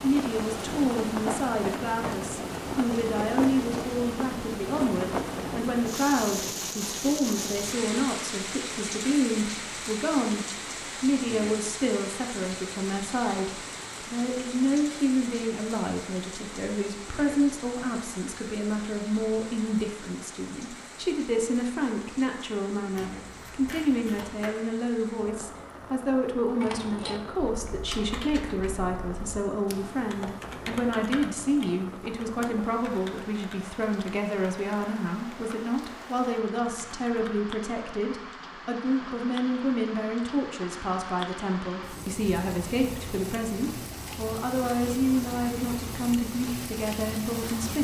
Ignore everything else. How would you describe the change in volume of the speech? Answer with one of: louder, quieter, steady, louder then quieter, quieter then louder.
steady.